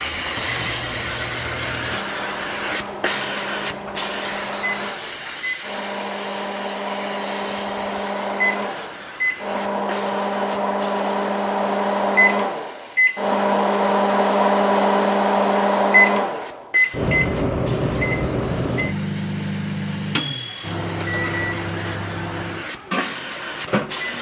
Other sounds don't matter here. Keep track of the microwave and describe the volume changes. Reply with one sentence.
The loudness of the microwave goes up, then down.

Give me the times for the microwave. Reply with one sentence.
The microwave can be heard from 0.0 to 24.1 s.